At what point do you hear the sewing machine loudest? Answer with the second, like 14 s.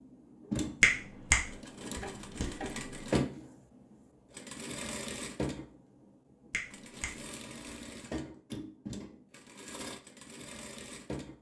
3 s.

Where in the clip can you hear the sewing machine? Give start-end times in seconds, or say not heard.
0.0-11.3.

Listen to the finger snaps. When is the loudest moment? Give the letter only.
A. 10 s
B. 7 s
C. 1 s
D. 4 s
C.